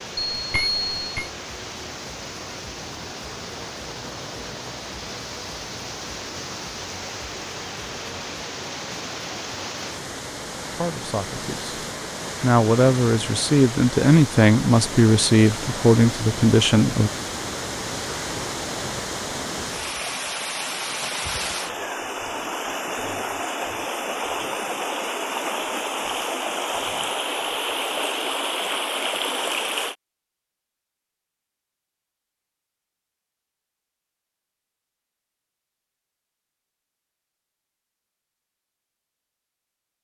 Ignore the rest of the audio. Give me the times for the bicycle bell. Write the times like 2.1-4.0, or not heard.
0.2-1.3.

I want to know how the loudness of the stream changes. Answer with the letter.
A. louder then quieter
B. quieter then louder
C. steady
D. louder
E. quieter
D.